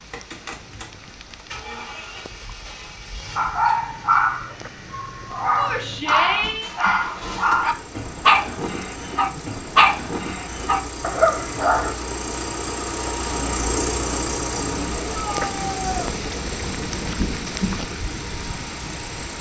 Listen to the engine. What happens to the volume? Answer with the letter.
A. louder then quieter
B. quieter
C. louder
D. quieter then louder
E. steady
A.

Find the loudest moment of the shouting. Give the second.
6 s.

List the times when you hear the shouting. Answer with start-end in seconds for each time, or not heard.
5.5-6.7, 15.1-16.1.